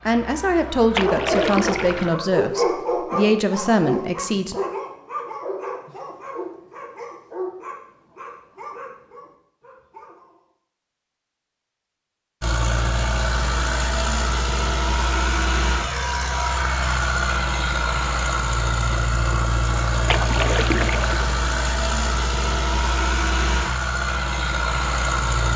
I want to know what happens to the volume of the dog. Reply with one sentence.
The volume of the dog goes down.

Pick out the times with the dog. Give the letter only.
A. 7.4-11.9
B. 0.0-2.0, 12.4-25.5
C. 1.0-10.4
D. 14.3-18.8
C.